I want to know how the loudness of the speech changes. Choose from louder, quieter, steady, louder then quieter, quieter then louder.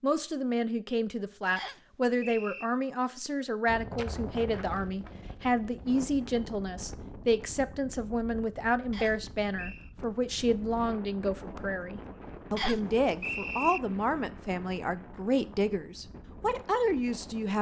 steady.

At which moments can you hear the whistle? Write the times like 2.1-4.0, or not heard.
1.6-2.6, 8.9-9.9, 12.6-13.8.